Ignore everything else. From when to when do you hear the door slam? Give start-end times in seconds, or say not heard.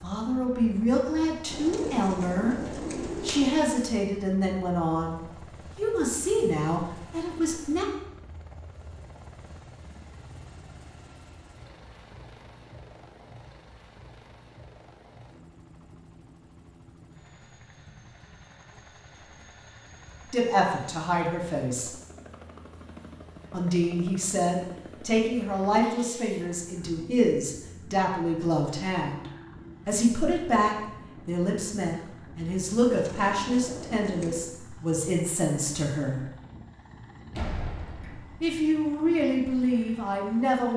37.4-38.6.